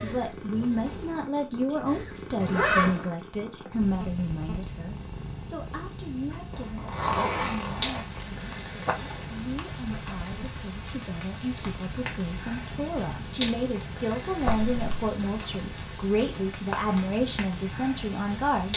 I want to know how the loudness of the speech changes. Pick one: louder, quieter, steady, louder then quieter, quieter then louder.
quieter then louder.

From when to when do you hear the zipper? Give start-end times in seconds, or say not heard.
2.4-3.1, 6.5-8.3, 14.4-14.8.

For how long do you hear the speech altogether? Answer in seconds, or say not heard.
19 s.